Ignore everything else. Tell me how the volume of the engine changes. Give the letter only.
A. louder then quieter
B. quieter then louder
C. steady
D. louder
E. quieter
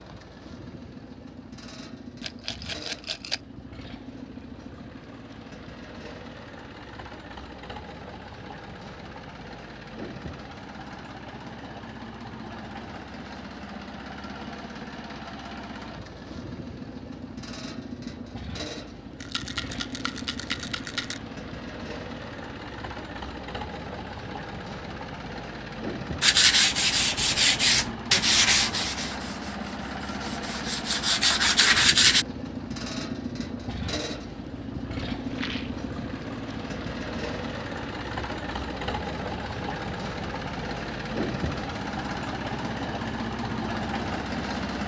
D.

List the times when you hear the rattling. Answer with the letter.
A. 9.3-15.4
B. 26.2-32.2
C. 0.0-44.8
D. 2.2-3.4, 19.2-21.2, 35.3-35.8
D.